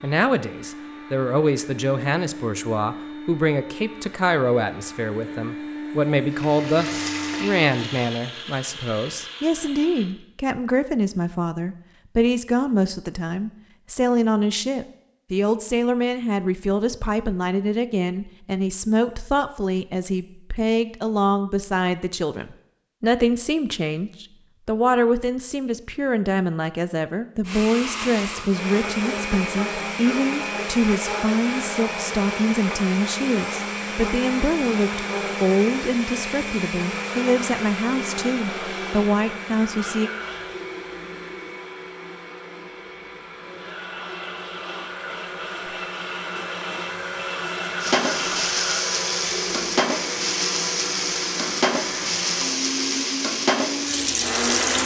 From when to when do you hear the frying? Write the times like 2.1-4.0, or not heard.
6.2-8.2, 47.8-54.8.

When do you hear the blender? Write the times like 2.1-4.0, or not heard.
0.0-10.2, 27.4-54.8.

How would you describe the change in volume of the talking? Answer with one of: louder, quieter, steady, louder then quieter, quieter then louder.
steady.